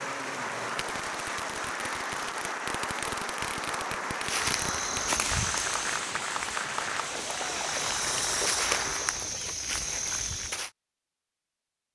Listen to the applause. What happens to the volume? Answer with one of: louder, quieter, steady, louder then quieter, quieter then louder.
steady.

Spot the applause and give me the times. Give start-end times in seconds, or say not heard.
0.0-9.4.